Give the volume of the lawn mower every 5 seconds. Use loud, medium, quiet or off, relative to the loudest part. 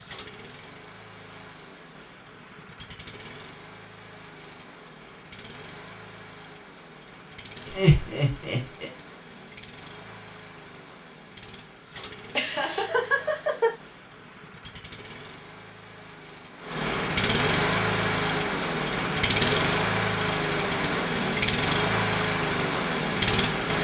quiet, quiet, quiet, loud, loud.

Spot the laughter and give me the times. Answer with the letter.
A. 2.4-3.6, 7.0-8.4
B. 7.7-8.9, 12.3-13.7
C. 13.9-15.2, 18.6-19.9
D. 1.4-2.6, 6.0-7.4
B.